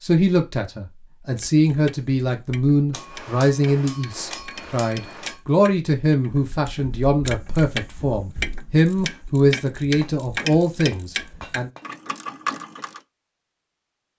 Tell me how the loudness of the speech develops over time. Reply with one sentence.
The volume of the speech stays about the same.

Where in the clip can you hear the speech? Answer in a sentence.
The speech can be heard from 0.0 to 11.7 s.